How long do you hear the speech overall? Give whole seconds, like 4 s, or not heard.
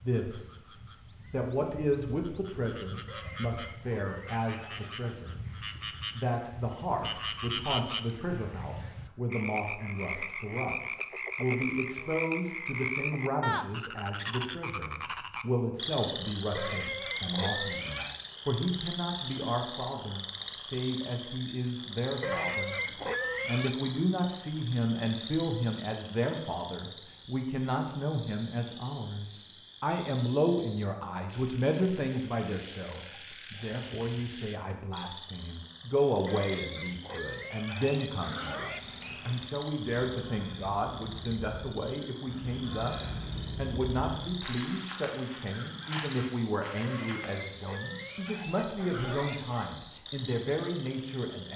49 s.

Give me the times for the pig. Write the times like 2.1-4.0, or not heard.
3.0-5.2, 16.6-18.2, 22.2-23.8, 36.2-38.9, 46.8-49.7.